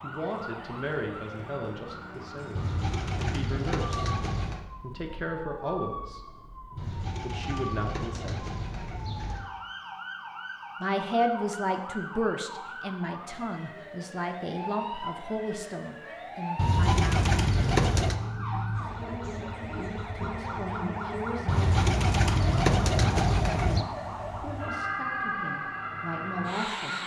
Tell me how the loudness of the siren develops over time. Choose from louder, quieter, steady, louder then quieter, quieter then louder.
louder.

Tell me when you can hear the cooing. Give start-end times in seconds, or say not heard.
2.5-4.7, 6.8-9.4, 16.6-18.2, 21.4-23.9.